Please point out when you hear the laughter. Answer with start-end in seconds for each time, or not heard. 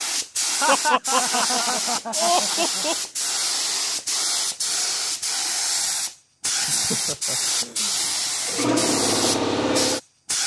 0.6-3.0, 6.7-7.9.